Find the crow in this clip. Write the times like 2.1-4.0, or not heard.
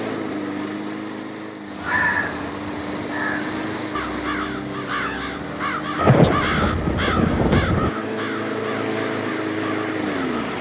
1.6-10.3.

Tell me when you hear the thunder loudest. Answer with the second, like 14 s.
6 s.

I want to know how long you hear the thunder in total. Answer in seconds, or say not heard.
2 s.